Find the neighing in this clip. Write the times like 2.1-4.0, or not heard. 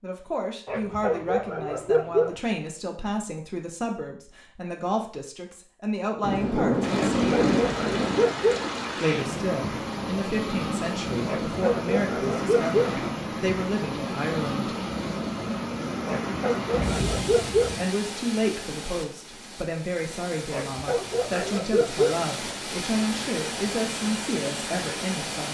not heard.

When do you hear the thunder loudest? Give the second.
7 s.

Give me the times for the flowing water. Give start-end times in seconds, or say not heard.
6.8-25.4.